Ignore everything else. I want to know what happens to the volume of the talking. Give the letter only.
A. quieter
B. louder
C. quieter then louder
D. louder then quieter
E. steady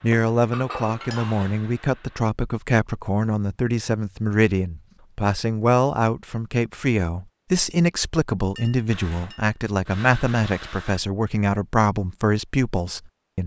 E.